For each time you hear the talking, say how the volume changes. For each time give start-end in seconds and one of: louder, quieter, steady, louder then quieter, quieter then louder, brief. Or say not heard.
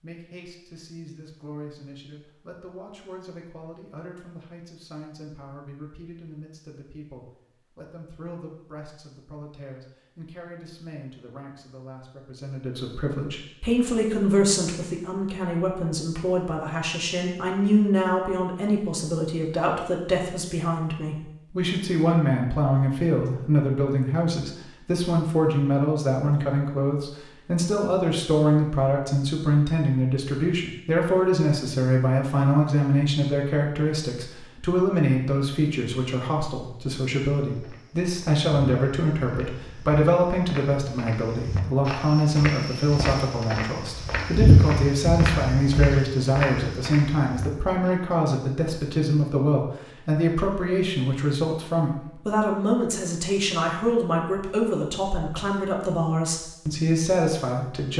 0.0-57.9 louder.